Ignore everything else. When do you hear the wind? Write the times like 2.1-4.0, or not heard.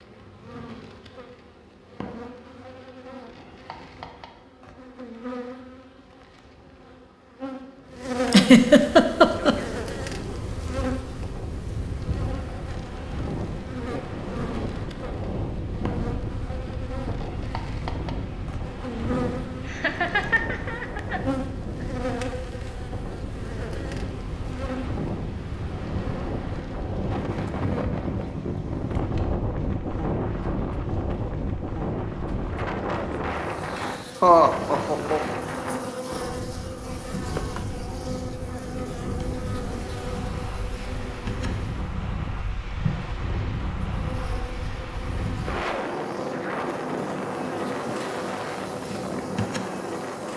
9.2-50.3.